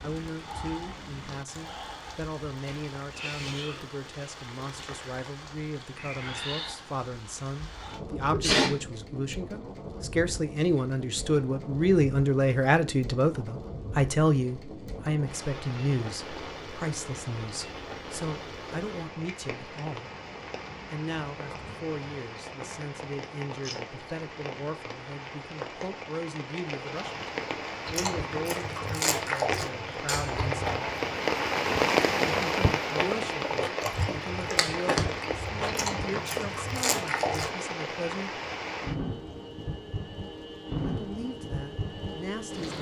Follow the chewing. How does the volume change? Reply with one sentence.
The volume of the chewing stays about the same.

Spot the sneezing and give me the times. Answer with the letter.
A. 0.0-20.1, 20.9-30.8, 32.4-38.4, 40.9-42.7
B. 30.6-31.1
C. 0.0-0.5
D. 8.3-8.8
D.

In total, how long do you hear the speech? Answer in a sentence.
You can hear the speech for 38 seconds altogether.